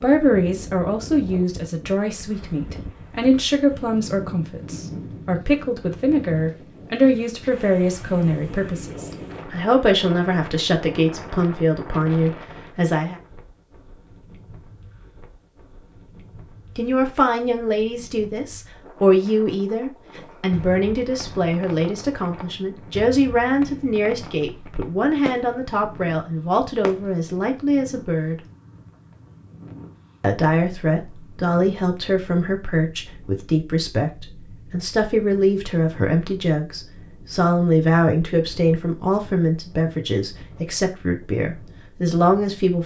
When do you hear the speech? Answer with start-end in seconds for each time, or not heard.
0.0-13.2, 16.8-28.4, 30.2-42.8.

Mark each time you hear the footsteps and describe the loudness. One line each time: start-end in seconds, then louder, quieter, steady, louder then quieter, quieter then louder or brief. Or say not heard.
not heard.